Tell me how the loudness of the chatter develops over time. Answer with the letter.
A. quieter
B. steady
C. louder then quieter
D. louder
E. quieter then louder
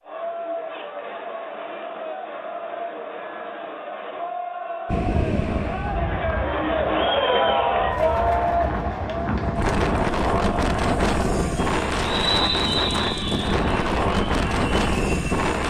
C.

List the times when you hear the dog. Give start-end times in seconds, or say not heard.
not heard.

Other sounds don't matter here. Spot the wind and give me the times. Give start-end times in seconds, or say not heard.
4.8-15.6.